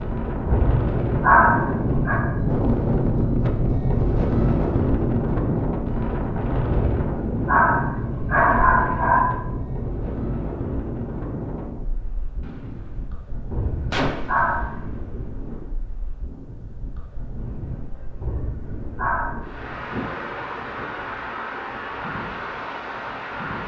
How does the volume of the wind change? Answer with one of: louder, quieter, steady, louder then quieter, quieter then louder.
quieter then louder.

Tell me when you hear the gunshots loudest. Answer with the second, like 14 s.
14 s.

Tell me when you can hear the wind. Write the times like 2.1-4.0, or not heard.
0.0-23.6.